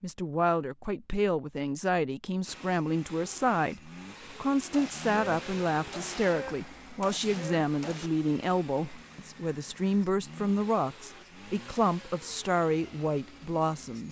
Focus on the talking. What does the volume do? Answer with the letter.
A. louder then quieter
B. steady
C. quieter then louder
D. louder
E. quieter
B.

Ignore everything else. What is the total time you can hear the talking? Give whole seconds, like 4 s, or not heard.
14 s.